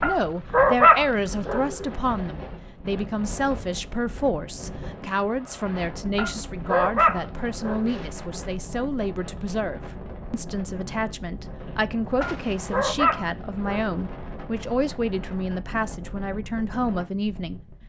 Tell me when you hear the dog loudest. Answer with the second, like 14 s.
1 s.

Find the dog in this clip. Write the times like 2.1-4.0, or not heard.
0.0-1.9, 6.2-8.1, 12.2-13.9.